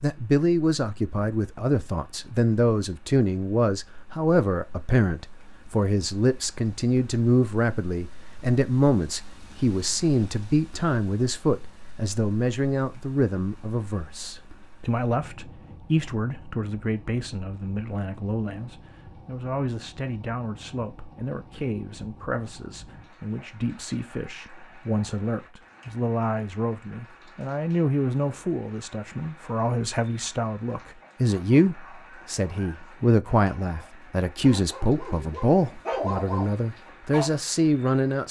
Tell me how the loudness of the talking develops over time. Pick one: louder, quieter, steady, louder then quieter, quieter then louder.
quieter then louder.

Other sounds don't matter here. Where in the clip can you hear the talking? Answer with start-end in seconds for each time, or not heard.
0.0-38.2.